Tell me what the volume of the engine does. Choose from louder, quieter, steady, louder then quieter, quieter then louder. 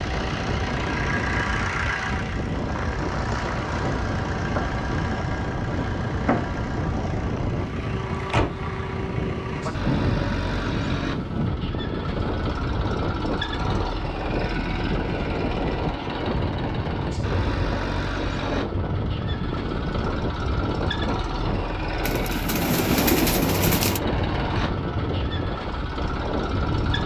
steady.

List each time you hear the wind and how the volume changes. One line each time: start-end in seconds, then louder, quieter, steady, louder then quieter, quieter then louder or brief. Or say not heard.
0.0-27.0 steady.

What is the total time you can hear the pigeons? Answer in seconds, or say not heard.
2 s.